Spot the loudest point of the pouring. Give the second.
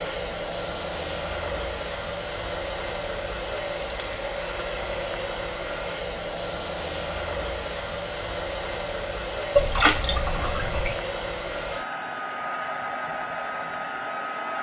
10 s.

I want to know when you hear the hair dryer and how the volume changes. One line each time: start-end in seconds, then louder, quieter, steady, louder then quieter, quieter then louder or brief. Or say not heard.
0.0-14.5 steady.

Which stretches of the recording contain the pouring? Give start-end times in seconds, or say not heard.
9.6-10.9.